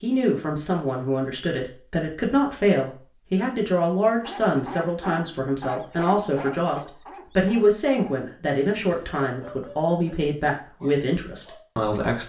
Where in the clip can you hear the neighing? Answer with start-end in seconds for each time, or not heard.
not heard.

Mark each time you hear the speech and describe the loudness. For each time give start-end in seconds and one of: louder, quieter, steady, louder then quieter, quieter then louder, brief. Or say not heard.
0.0-12.2 steady.